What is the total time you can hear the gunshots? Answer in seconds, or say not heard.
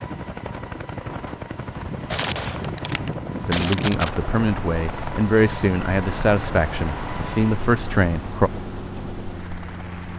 2 s.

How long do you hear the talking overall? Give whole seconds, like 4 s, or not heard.
5 s.